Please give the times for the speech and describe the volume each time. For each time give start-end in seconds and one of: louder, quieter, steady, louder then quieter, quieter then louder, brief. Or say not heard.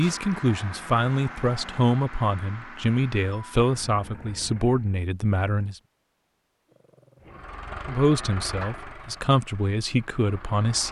0.0-5.8 steady
7.8-10.8 brief.